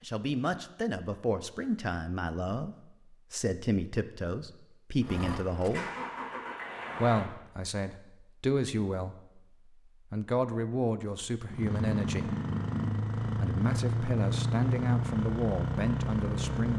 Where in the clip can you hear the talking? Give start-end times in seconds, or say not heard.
0.0-5.8, 7.0-9.2, 10.1-12.3, 13.2-16.7.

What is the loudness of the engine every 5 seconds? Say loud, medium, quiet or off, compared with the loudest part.
off, medium, loud, loud.